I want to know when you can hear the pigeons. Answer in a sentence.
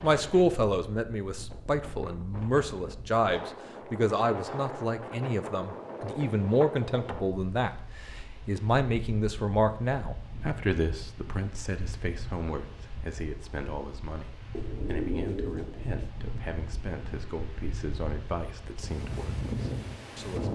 You can hear the pigeons from 14.5 to 16.1 s.